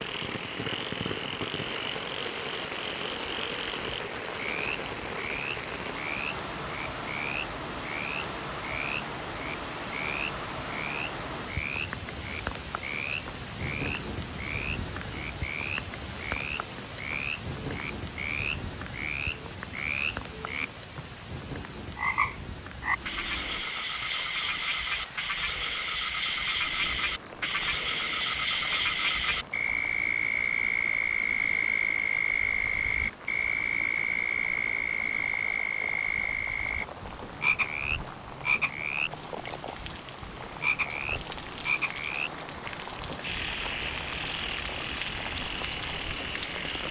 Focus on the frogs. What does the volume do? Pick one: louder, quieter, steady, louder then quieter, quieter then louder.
louder then quieter.